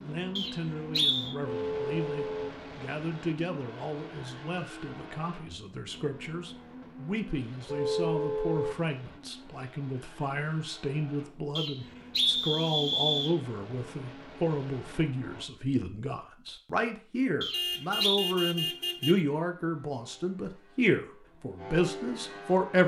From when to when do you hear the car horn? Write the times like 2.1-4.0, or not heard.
1.4-2.6, 7.7-8.8, 17.5-19.2.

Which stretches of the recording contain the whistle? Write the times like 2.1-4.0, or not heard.
0.3-1.4, 11.6-13.3, 17.4-18.2.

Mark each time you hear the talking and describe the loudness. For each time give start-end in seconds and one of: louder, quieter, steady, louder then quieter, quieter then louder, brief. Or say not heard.
0.0-22.8 louder.